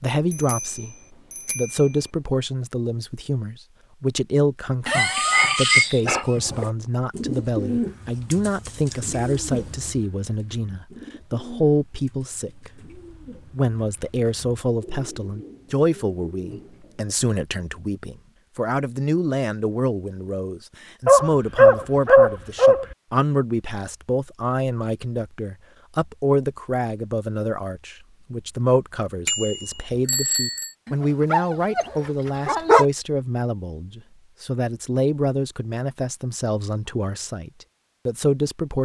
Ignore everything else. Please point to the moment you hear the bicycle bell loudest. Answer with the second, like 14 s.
30 s.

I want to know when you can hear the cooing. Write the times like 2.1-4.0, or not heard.
6.3-17.1.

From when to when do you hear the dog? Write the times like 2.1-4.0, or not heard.
4.8-6.7, 21.1-22.9, 30.9-32.9.